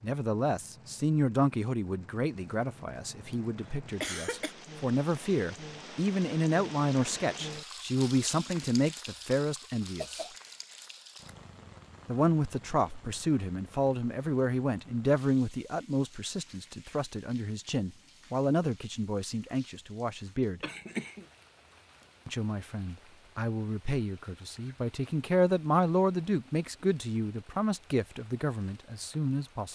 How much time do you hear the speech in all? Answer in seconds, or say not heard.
26 s.